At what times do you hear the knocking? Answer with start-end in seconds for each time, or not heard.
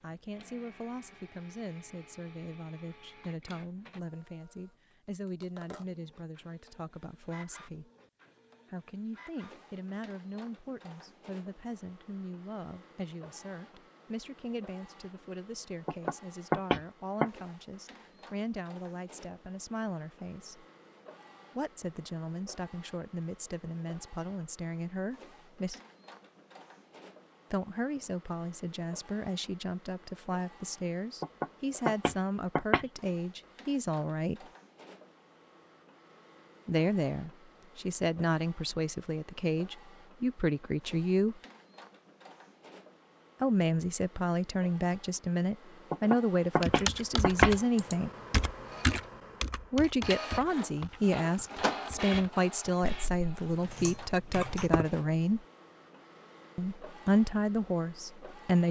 15.8-17.3, 31.2-32.9, 45.9-47.5.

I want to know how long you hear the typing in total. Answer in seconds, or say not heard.
8 s.